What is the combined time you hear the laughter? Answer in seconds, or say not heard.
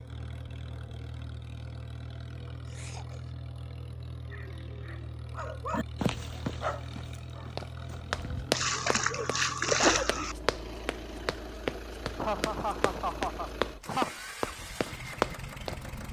3 s.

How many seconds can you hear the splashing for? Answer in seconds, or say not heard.
2 s.